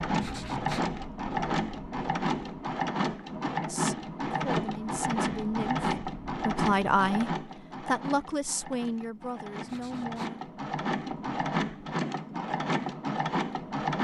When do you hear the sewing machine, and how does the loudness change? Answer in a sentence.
You can hear the sewing machine from 0.0 to 13.9 s, getting quieter then louder.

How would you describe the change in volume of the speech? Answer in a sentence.
The loudness of the speech goes up, then down.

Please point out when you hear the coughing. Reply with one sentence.
You can't hear the coughing here.